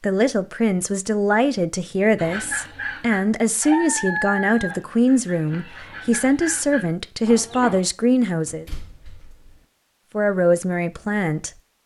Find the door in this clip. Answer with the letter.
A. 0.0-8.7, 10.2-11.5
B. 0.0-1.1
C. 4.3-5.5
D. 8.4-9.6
D.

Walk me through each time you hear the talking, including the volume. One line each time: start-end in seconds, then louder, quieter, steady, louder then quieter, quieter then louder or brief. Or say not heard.
0.0-8.7 steady
10.2-11.5 brief.